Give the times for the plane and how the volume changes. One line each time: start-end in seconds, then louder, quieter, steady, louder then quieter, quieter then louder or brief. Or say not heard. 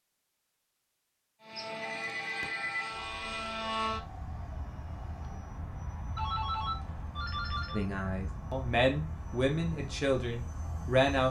1.4-11.2 quieter.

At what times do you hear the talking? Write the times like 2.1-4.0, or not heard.
7.7-11.2.